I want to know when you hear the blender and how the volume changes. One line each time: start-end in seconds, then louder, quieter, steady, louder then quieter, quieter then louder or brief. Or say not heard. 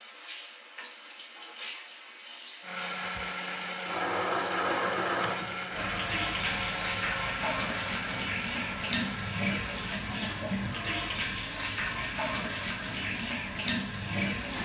2.6-14.5 quieter.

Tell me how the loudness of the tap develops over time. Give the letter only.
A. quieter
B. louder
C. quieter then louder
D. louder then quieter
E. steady
B.